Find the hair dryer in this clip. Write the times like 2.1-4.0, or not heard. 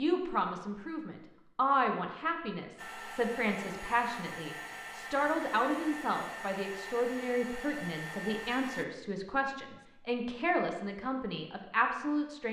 2.8-8.8.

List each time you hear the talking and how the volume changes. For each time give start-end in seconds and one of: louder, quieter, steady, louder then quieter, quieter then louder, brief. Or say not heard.
0.0-12.4 steady.